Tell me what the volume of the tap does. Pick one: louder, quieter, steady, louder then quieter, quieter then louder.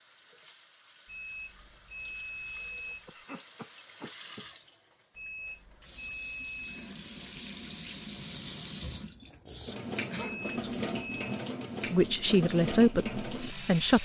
louder.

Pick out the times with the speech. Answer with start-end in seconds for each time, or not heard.
11.9-14.0.